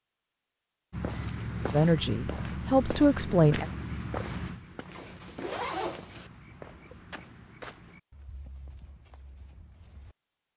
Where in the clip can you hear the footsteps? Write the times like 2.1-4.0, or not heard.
0.9-10.2.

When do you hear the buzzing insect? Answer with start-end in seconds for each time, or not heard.
not heard.